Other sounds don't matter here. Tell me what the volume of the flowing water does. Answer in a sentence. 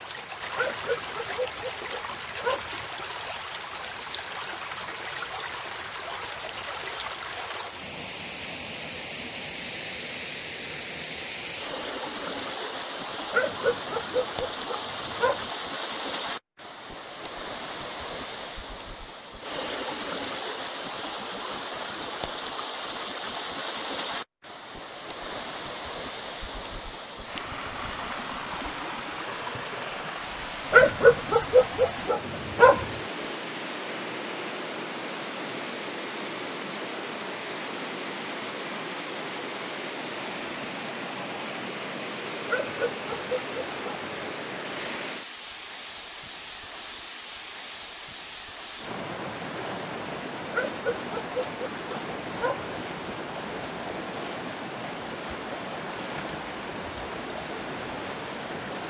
The volume of the flowing water stays about the same.